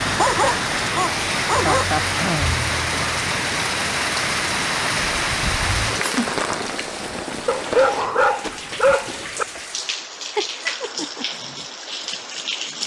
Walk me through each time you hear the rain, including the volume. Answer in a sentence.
The rain can be heard from 0.0 to 12.8 s, getting quieter.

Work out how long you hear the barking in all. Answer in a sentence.
You can hear the barking for 4 seconds altogether.